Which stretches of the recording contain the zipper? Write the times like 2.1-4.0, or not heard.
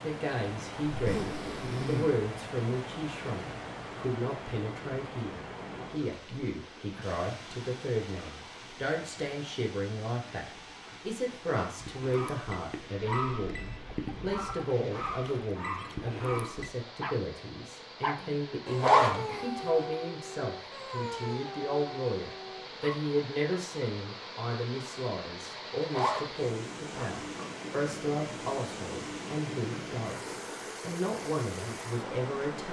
0.9-2.1, 18.7-19.4, 25.8-27.4.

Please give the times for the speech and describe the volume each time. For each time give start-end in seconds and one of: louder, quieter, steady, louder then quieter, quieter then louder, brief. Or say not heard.
0.0-32.6 steady.